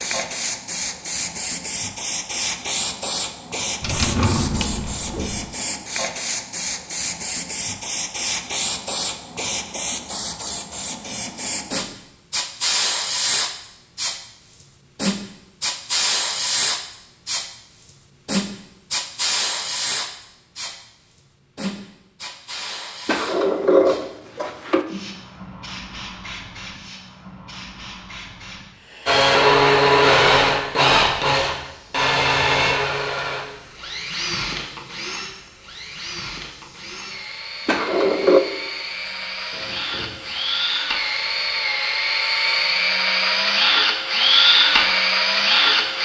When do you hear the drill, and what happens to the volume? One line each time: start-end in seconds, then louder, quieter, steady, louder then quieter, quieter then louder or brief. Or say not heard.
29.1-45.9 quieter then louder.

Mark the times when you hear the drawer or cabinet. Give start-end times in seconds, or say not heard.
3.8-5.5, 23.1-24.9, 37.6-38.4.